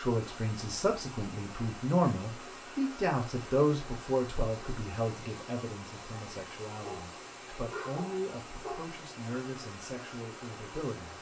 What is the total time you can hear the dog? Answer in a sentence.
The dog can be heard for 2 seconds in total.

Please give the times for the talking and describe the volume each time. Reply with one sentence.
The talking can be heard from 0.0 to 11.1 s, getting quieter.